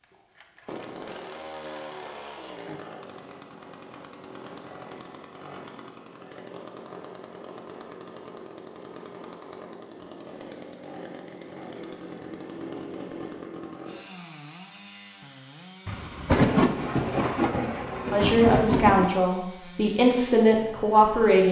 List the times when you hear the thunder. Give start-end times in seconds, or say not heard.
15.8-19.1.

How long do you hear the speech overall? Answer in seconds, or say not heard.
3 s.